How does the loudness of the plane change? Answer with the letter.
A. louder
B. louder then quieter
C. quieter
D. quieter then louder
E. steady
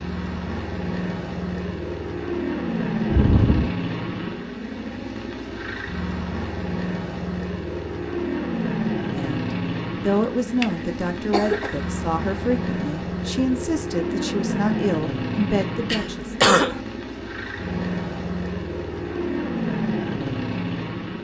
E.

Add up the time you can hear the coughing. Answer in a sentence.
The coughing can be heard for 3 seconds in total.